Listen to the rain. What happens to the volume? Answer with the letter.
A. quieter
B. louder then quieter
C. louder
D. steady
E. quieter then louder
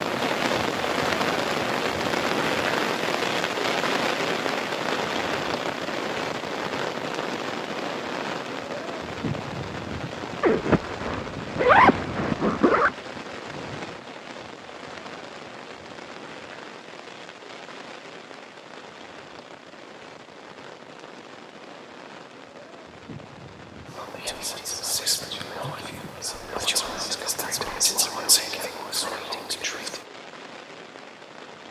A.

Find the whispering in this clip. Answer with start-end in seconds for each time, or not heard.
23.9-30.1.